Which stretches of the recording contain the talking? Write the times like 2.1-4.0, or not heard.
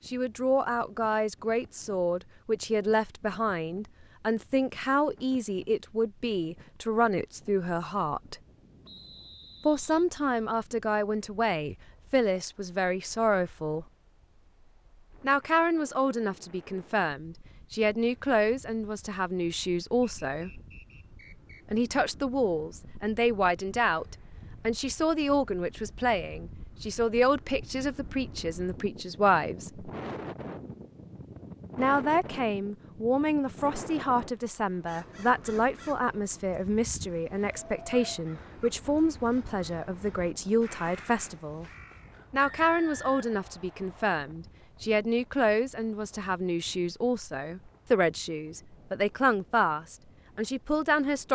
0.1-8.3, 9.7-13.8, 15.2-20.6, 21.7-29.9, 31.8-41.6, 42.3-51.3.